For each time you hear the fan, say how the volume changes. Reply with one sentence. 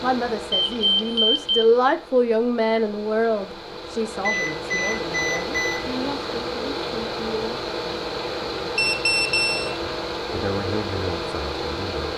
You can hear the fan from 0.0 to 12.1 s, getting louder.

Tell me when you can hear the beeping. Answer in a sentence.
You can hear the beeping from 0.5 to 1.7 s, from 4.2 to 5.8 s and from 8.8 to 9.8 s.